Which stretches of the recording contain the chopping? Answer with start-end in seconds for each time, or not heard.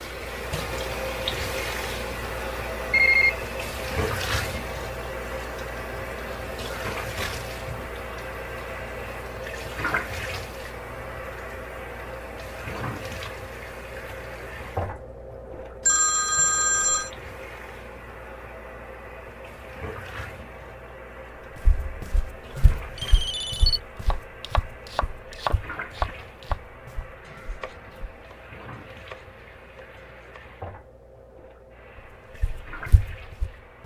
24.1-30.6.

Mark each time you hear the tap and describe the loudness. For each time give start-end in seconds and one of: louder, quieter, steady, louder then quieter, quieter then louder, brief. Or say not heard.
0.0-33.8 quieter.